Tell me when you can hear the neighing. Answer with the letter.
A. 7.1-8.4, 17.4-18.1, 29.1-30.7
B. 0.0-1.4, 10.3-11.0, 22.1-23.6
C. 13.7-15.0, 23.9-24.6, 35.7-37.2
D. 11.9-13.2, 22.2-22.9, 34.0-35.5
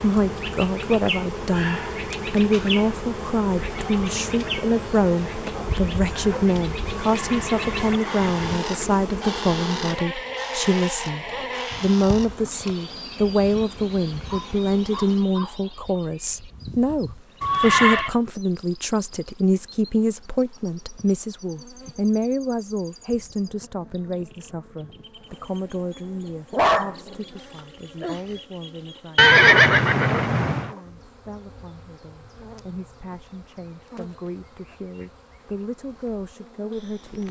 A.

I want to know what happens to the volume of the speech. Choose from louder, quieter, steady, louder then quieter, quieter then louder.
quieter.